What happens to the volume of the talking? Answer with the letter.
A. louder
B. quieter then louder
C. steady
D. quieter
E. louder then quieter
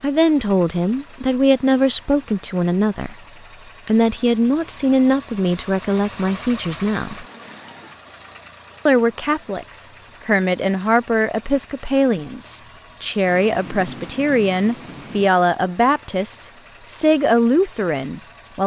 C.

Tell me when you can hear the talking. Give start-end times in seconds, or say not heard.
0.0-3.1, 3.9-7.2, 8.8-18.6.